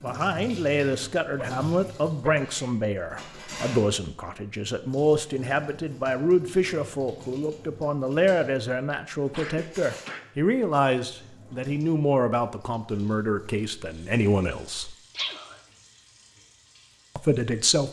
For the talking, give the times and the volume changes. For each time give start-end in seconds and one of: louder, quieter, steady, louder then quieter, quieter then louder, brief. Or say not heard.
0.0-14.9 steady
17.1-17.8 brief.